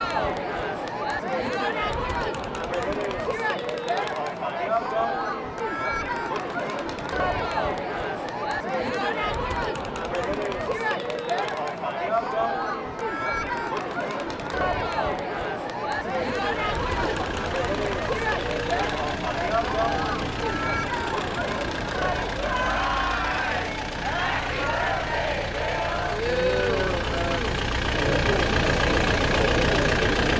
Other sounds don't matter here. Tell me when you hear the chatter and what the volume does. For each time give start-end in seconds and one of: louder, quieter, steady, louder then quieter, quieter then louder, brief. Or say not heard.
0.0-30.3 steady.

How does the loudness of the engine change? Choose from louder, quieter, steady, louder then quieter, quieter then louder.
louder.